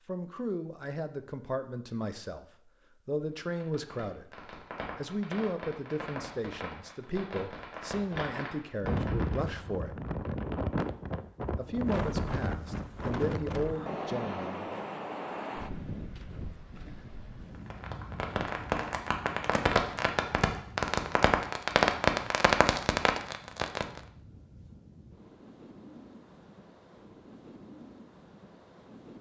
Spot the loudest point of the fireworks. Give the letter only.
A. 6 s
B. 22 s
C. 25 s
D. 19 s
B.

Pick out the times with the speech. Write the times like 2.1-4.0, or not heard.
0.1-2.5, 3.0-4.3, 5.0-10.0, 11.6-14.8.